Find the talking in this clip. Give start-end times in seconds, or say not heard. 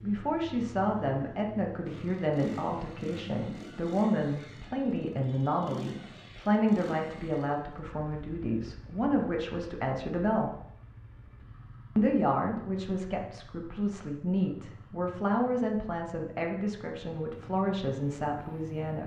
0.0-10.5, 11.9-19.0.